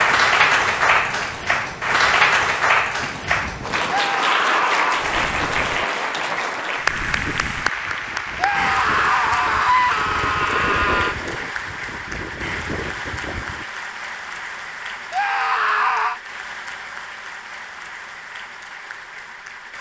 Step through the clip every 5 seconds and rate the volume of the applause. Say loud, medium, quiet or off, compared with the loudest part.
loud, medium, medium, quiet.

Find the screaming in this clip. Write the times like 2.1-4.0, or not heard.
3.9-5.1, 8.3-11.2, 15.1-16.2.